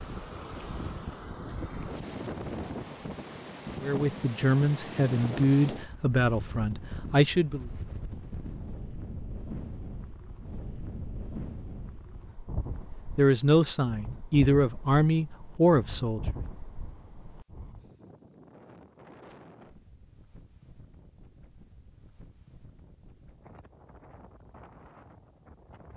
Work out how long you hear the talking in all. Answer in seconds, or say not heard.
7 s.